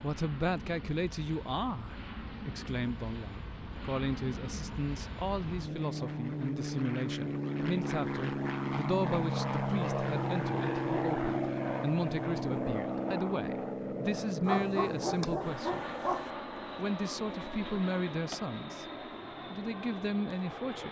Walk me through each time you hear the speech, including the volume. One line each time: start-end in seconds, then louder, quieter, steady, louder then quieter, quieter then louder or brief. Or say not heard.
0.0-15.9 steady
16.8-18.9 brief
19.5-20.8 brief.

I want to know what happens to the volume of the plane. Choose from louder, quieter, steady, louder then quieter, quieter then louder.
louder then quieter.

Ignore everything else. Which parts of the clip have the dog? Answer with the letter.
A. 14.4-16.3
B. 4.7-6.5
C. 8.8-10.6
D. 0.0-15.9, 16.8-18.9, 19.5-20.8
A.